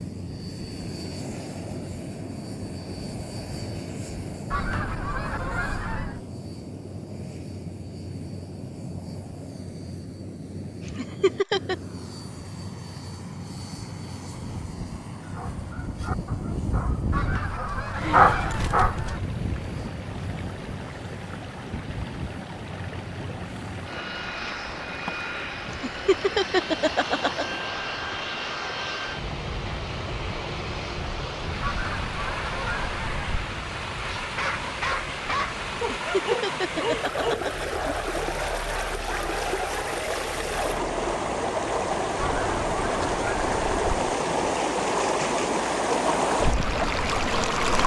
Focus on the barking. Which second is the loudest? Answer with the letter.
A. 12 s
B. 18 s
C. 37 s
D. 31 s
B.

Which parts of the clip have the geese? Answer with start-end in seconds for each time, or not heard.
4.5-6.2, 17.1-19.2, 31.6-33.5, 42.1-43.9.